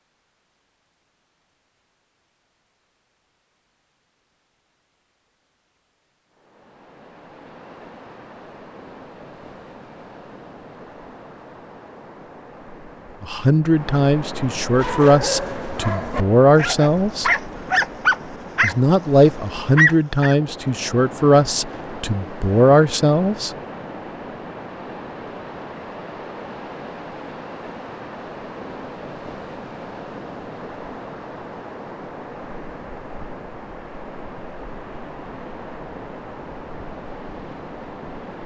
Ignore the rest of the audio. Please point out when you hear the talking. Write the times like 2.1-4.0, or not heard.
13.2-17.3, 18.6-23.5.